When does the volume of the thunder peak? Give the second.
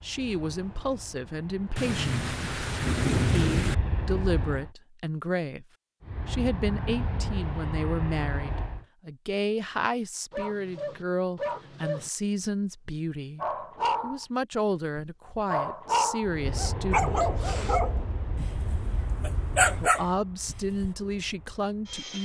3 s.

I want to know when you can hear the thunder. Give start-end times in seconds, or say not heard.
1.8-3.8.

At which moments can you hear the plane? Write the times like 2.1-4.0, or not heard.
0.0-4.7, 6.0-8.8, 16.2-22.1.